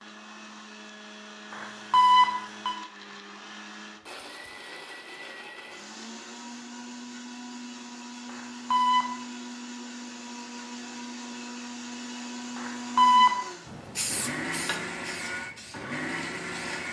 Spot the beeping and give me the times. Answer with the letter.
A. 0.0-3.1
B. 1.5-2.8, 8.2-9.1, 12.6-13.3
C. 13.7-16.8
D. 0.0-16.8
B.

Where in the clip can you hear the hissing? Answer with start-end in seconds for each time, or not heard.
13.7-16.8.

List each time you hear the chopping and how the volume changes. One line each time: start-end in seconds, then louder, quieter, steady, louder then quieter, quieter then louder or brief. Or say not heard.
not heard.